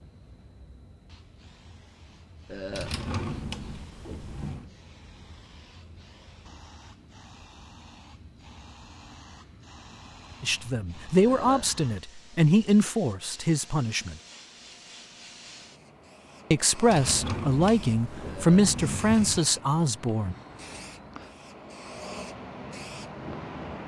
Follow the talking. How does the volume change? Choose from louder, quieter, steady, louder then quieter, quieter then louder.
steady.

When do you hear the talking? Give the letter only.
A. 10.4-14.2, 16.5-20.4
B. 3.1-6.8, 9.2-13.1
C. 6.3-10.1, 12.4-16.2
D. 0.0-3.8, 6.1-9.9
A.